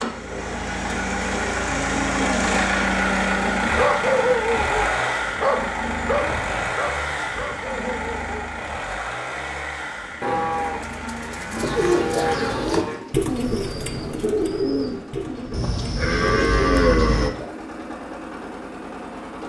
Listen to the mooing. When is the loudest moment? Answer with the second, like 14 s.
17 s.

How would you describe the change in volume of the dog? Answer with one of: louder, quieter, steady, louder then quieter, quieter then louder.
quieter.